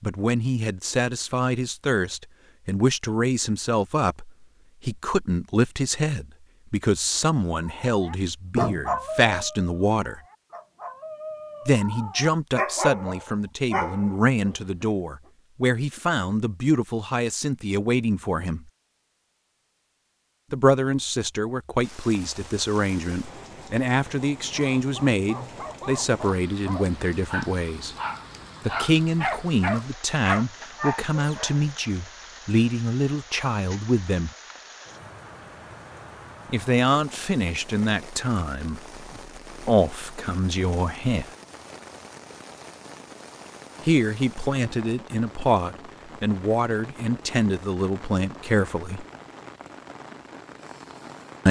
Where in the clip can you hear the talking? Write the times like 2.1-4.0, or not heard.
0.0-10.2, 11.7-18.6, 20.5-27.9, 28.6-34.3, 36.5-41.2, 43.9-49.0.